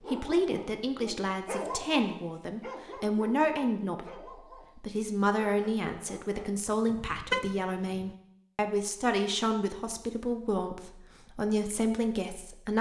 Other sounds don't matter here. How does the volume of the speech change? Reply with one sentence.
The volume of the speech stays about the same.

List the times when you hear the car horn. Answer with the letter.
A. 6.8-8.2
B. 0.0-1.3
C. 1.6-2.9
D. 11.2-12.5
A.